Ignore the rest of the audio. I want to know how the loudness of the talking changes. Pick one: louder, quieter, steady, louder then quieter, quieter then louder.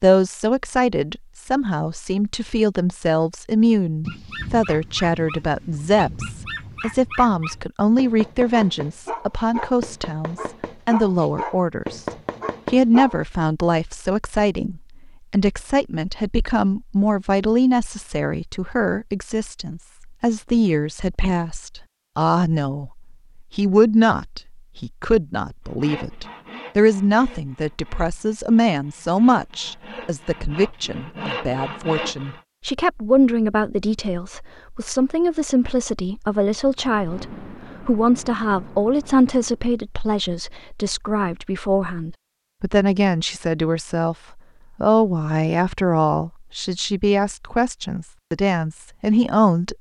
steady.